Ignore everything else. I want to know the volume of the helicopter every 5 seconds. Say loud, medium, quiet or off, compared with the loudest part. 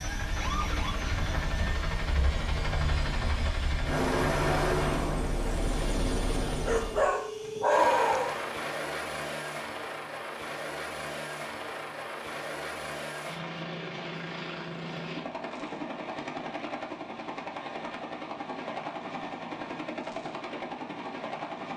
loud, loud, medium, medium, medium.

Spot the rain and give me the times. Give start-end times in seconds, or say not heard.
not heard.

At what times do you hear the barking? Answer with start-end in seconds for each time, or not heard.
6.7-8.4.